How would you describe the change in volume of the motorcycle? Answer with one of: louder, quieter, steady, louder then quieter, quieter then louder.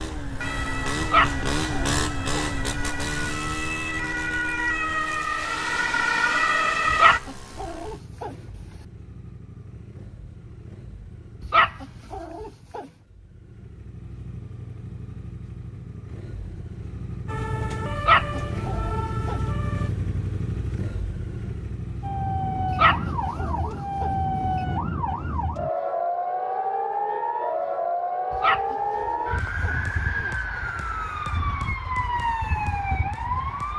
quieter then louder.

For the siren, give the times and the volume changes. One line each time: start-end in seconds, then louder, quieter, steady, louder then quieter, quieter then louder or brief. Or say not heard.
0.2-7.2 louder
17.2-19.9 brief
22.0-33.7 steady.